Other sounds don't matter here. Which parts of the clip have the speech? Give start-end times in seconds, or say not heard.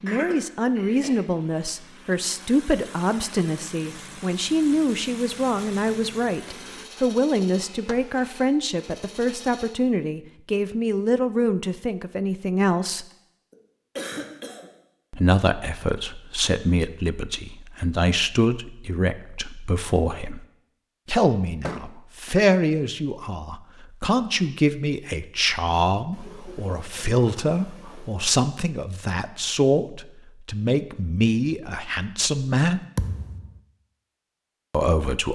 0.0-13.1, 15.1-20.4, 21.1-32.9, 34.7-35.3.